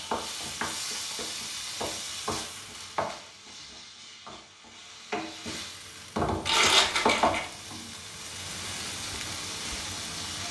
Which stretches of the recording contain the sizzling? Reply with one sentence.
You can hear the sizzling from 0.0 to 10.4 s.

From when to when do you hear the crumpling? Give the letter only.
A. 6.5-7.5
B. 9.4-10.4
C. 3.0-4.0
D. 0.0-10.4
A.